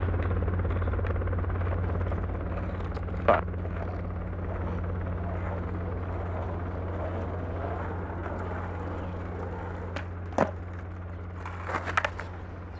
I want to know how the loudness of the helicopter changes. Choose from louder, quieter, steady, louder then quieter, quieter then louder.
quieter.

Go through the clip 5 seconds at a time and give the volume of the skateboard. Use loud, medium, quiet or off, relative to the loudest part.
medium, medium, loud.